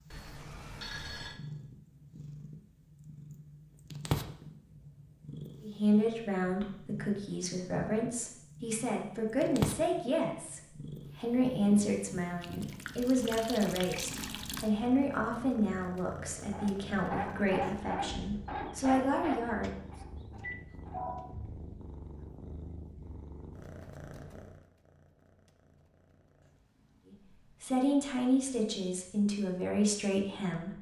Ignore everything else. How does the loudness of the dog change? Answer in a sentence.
The volume of the dog goes down.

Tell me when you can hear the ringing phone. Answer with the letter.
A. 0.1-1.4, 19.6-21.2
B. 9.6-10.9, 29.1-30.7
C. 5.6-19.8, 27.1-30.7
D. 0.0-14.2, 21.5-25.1
A.